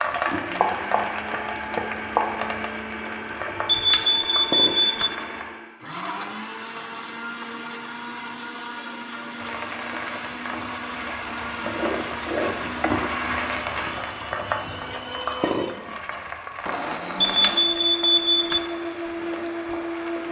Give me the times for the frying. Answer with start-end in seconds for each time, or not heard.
0.0-5.5, 9.3-20.2.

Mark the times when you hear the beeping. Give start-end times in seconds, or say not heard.
3.6-5.1, 17.2-18.6.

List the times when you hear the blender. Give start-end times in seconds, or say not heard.
0.0-20.2.